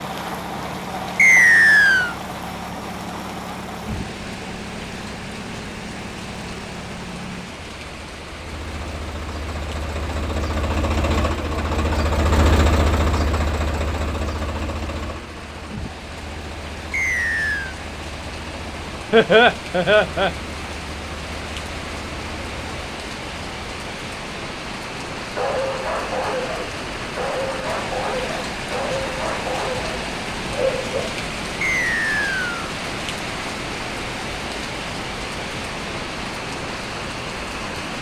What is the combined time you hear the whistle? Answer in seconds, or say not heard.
3 s.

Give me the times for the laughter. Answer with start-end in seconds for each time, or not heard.
19.1-20.4.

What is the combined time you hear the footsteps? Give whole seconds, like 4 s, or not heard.
not heard.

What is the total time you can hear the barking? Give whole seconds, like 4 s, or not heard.
6 s.